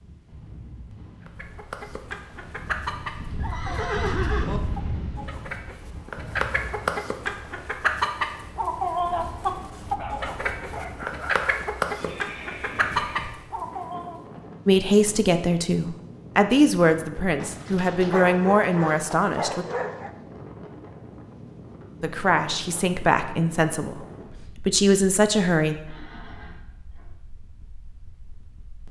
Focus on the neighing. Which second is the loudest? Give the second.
4 s.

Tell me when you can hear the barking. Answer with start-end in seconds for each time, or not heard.
9.1-11.5, 17.4-20.1.